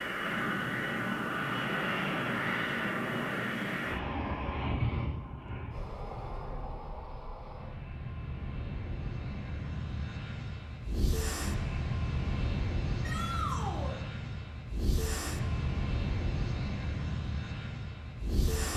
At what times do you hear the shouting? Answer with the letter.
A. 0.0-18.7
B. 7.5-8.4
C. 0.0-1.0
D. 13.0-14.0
D.